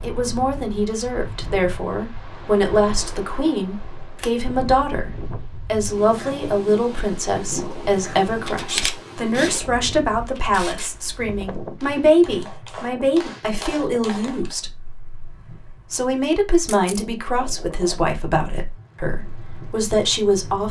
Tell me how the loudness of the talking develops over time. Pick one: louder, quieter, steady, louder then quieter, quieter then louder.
steady.